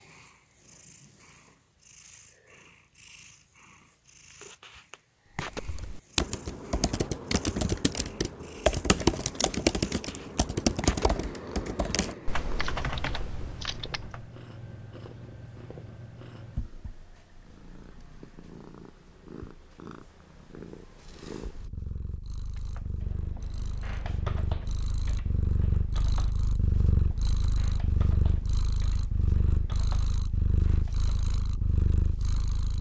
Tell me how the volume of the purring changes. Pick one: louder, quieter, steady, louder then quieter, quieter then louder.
louder.